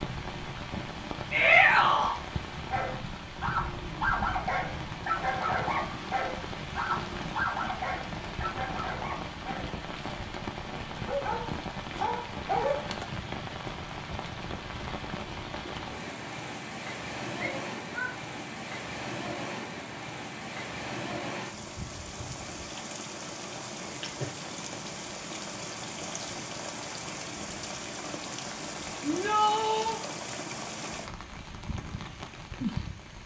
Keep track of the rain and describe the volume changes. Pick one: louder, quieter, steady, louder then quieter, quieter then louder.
steady.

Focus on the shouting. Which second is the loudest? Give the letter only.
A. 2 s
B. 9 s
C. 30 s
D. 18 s
A.